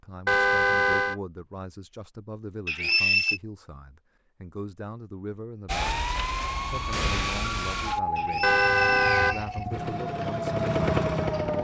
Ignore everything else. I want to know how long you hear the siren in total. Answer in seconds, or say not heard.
6 s.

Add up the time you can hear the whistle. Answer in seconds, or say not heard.
2 s.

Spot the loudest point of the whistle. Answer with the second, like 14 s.
3 s.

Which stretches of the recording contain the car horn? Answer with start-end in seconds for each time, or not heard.
0.2-1.1, 8.4-9.5.